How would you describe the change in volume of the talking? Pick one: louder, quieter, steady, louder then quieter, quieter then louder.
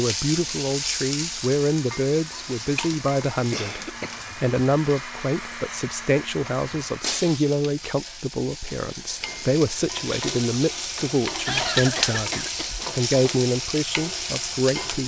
steady.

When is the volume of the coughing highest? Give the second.
12 s.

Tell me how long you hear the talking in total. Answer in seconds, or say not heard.
15 s.